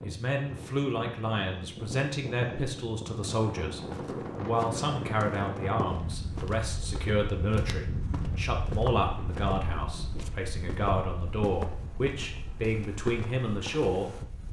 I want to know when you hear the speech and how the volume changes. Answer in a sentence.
You can hear the speech from 0.0 to 14.4 s, at a steady volume.